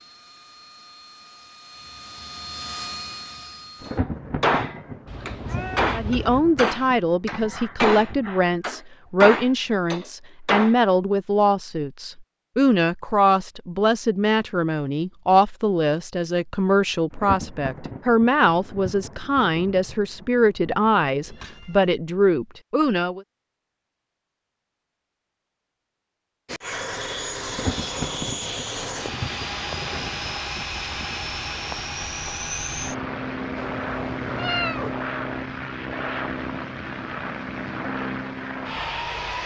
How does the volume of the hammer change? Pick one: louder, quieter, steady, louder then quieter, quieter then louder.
quieter then louder.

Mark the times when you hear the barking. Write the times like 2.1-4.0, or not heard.
not heard.